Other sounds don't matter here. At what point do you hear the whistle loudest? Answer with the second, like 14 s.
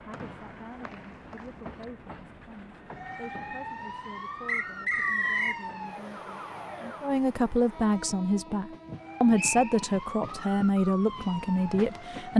5 s.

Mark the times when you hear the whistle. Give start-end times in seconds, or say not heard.
0.1-1.9, 4.5-5.6, 9.3-9.8.